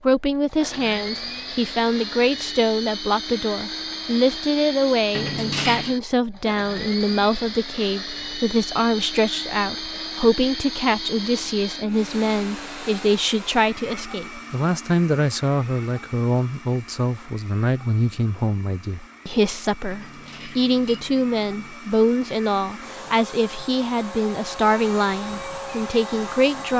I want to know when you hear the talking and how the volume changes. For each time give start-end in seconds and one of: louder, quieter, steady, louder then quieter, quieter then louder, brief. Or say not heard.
0.0-26.7 steady.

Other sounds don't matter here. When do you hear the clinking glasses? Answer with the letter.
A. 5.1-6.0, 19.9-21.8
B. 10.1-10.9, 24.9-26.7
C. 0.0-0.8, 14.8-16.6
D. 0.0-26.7
A.